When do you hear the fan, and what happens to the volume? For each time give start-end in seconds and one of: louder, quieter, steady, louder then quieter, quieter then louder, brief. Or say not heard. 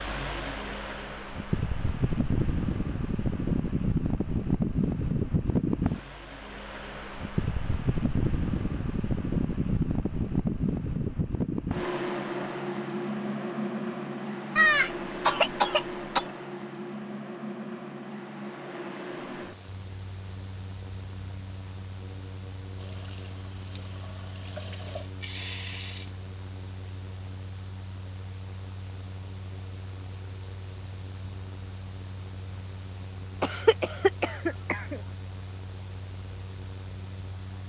0.0-37.6 quieter.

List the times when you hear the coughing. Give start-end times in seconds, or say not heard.
14.6-16.2, 33.4-35.0.